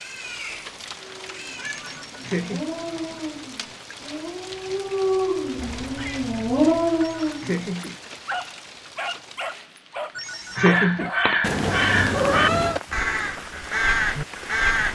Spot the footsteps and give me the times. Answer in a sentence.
The footsteps can't be heard in this clip.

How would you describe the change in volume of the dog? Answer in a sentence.
The loudness of the dog goes up, then down.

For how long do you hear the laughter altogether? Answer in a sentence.
The laughter can be heard for 3 seconds in total.